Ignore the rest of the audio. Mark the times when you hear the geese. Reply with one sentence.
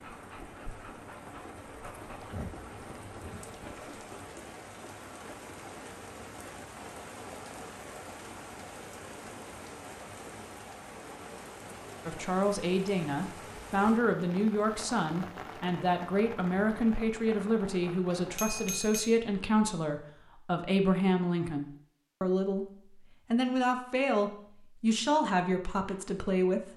The geese can't be heard in this clip.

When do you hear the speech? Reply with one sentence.
The speech can be heard from 12.1 to 26.7 s.